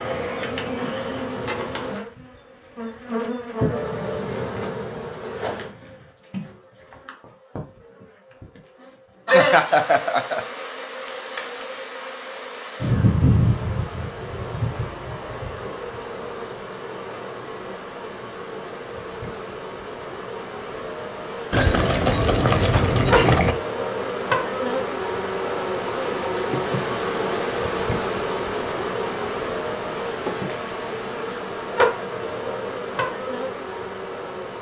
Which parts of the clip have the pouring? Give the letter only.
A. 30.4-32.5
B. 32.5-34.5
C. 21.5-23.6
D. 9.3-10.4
C.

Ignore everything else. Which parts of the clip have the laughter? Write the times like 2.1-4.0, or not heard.
9.3-10.4.